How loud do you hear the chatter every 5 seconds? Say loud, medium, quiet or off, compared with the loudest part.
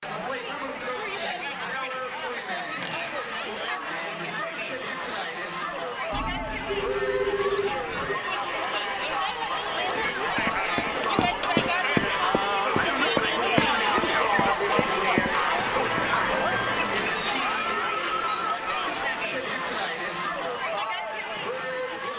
medium, medium, loud, loud, medium.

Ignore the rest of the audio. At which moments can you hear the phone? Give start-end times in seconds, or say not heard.
6.1-8.2, 15.5-17.1.